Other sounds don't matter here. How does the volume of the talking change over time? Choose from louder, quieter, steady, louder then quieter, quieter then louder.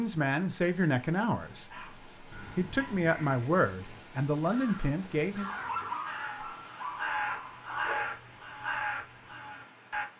quieter then louder.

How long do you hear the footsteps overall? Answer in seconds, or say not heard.
not heard.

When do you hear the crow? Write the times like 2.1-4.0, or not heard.
2.3-10.1.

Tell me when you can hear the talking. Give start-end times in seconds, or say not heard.
0.0-5.5.